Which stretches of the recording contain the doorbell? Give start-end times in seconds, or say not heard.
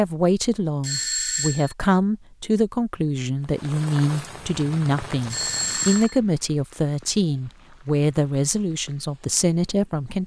0.8-1.8, 5.3-6.2.